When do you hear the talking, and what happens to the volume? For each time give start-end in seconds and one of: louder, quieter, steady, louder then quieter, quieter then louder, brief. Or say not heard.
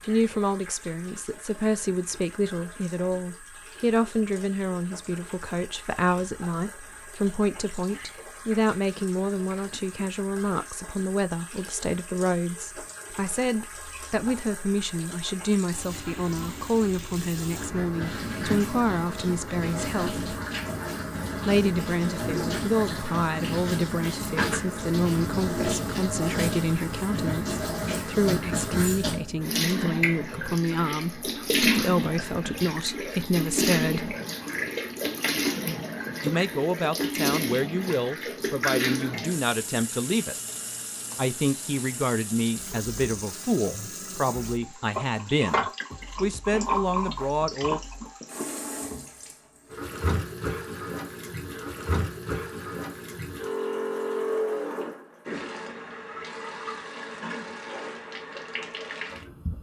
0.0-20.2 steady
21.4-34.1 steady
36.2-40.4 steady
41.1-47.8 steady.